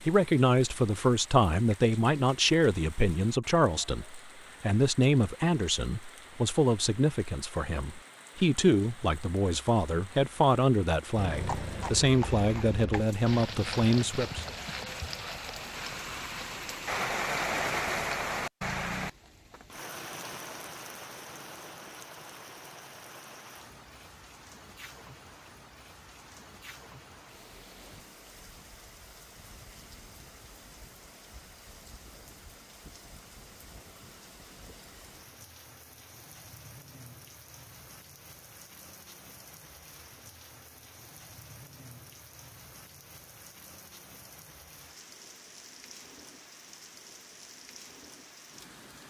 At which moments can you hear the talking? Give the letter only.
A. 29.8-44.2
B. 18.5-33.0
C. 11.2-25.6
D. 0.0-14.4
D.